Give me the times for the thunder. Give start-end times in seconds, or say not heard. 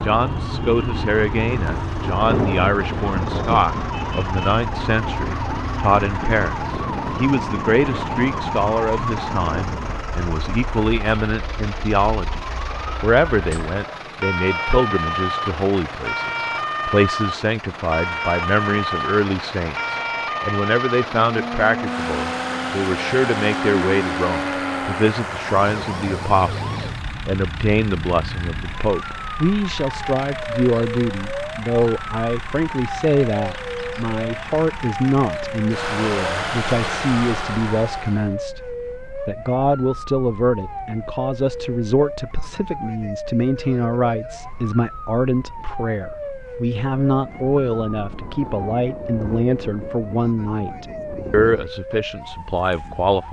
1.6-3.6, 47.0-51.7.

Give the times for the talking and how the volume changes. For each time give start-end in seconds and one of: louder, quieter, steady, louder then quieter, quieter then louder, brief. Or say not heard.
0.0-12.4 steady
13.0-53.2 steady.